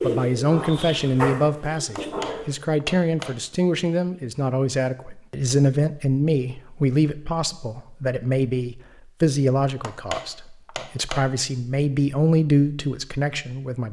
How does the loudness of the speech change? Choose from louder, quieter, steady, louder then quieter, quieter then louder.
steady.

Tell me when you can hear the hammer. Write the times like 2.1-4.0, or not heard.
1.8-3.4, 9.7-11.3.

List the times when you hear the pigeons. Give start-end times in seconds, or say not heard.
0.0-2.5.